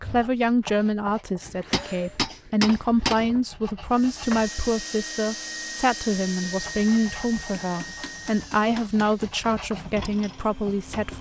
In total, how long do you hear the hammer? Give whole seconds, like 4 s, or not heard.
4 s.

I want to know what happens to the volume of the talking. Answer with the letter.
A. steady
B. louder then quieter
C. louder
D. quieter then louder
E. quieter
A.